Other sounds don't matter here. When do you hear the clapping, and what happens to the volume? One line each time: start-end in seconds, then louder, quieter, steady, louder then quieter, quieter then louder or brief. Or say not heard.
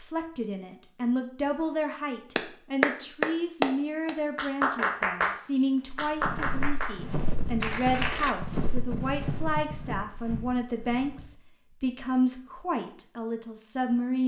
2.4-7.0 quieter
7.6-8.3 brief.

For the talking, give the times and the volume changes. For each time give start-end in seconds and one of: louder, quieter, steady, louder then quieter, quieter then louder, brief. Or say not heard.
0.0-14.2 steady.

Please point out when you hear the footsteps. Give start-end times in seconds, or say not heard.
6.0-11.3.